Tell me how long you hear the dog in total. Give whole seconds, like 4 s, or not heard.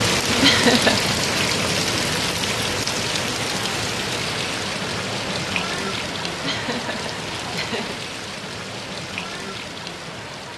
not heard.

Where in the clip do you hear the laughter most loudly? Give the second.
1 s.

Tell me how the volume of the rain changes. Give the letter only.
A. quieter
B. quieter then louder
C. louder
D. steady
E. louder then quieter
A.